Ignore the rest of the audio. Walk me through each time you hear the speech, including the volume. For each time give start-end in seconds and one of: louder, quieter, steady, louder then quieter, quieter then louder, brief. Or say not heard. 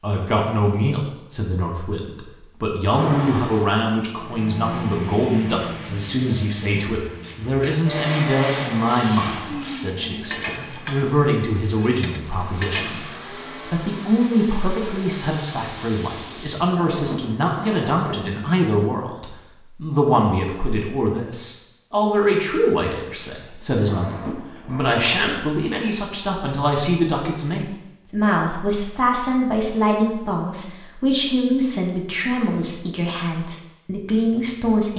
0.0-34.9 steady.